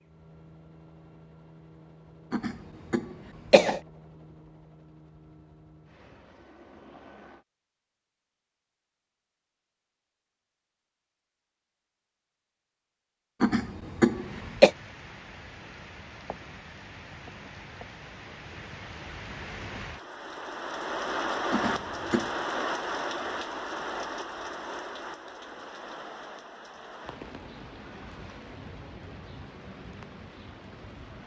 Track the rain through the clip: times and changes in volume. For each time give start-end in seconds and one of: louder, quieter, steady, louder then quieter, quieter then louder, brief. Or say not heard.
14.1-31.2 louder then quieter.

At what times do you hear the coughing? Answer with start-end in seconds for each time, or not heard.
2.3-3.8, 13.4-14.7, 21.5-22.3.